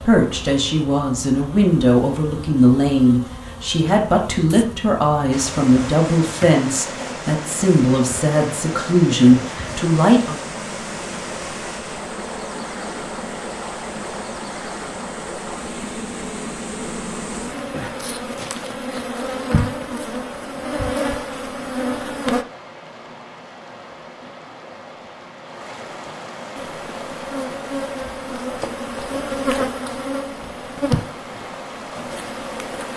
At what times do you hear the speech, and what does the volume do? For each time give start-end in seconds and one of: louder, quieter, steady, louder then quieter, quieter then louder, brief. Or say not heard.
0.1-10.4 steady.